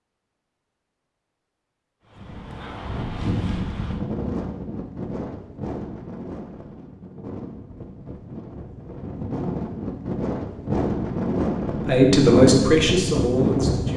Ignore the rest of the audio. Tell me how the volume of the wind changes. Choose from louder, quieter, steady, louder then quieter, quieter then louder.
quieter then louder.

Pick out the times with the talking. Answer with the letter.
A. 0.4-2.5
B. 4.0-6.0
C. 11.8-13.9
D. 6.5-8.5
C.